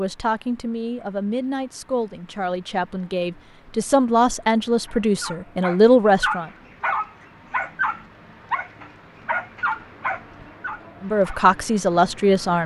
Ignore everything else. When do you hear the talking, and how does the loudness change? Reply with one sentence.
The talking can be heard from 0.0 to 6.5 s, getting louder; and briefly from 11.0 to 12.6 s.